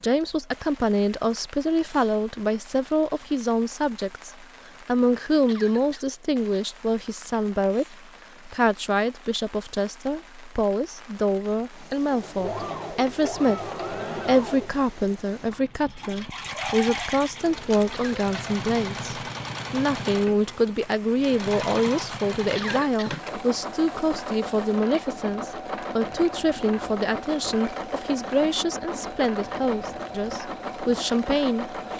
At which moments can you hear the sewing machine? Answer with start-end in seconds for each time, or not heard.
12.1-31.9.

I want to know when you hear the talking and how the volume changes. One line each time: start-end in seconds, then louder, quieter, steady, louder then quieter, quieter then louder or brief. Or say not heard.
0.0-31.8 steady.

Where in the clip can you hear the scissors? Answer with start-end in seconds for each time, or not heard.
not heard.